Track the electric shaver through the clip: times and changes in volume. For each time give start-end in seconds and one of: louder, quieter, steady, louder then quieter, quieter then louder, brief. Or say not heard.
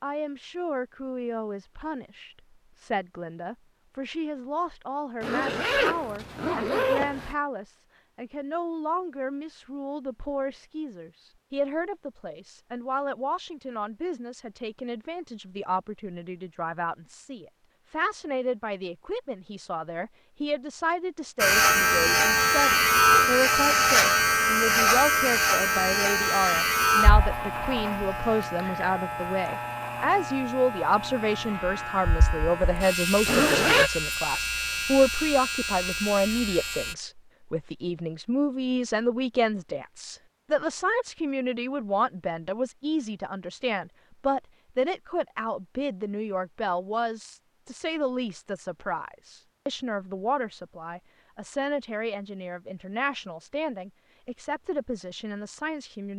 21.4-37.0 quieter.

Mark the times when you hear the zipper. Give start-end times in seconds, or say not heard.
5.2-7.3, 33.2-33.9.